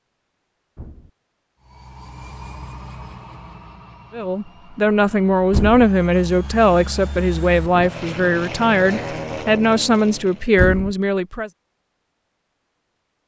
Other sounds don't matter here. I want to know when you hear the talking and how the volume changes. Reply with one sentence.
You can hear the talking from 4.1 to 11.5 s, at a steady volume.